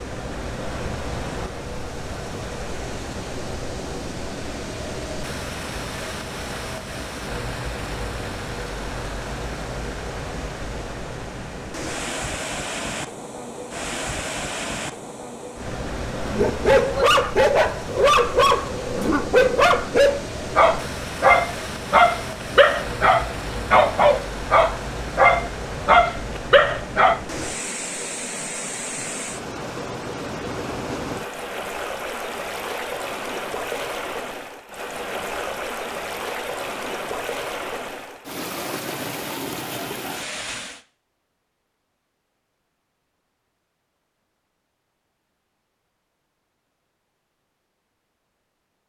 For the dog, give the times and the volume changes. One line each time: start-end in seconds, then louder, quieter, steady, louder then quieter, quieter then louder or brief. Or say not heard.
16.2-27.2 steady.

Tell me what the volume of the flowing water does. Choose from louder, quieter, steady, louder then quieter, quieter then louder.
steady.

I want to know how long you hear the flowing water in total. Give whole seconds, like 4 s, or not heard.
41 s.